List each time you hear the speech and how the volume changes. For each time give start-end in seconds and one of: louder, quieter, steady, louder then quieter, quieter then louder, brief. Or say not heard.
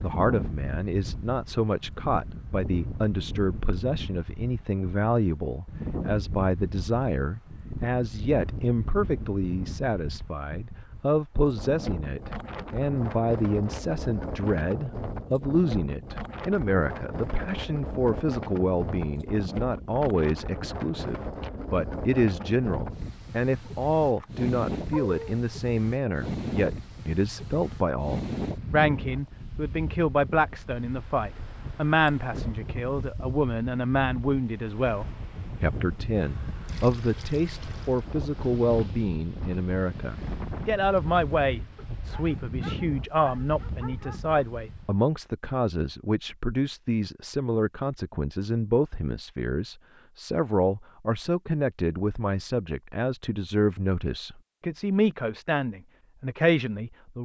0.0-57.1 steady.